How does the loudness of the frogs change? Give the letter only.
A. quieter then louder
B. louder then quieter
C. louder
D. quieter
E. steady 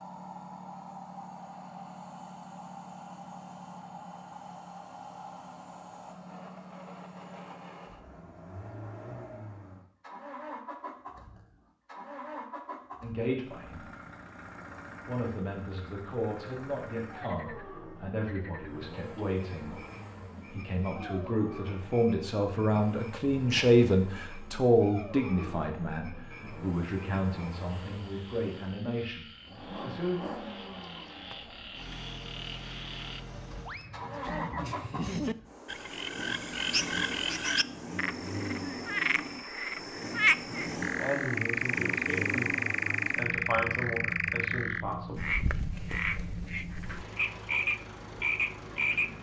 C.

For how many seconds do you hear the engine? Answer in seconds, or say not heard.
49 s.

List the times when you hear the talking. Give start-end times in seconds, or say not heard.
13.0-13.8, 15.1-19.8, 20.4-30.1, 40.6-45.2.